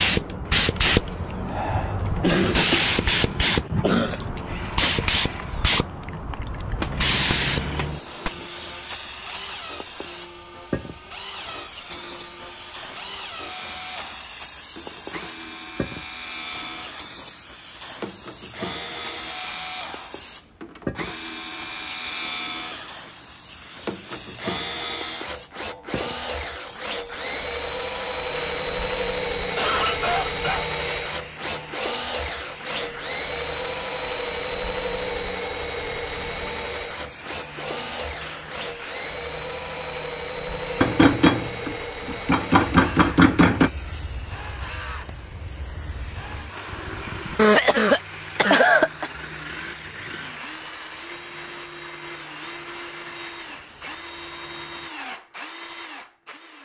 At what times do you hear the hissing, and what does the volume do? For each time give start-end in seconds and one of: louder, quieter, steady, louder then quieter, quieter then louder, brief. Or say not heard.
0.0-54.9 quieter.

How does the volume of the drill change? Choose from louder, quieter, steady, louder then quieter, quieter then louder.
louder then quieter.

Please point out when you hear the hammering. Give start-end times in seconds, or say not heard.
6.8-8.4, 40.8-43.7.